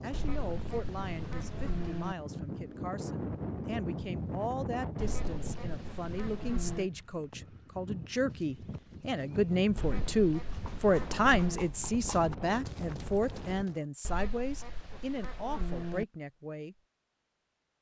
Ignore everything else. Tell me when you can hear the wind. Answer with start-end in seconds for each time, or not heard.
0.0-13.7.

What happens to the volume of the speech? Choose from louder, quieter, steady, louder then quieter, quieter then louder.
louder then quieter.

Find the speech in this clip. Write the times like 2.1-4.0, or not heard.
0.0-16.8.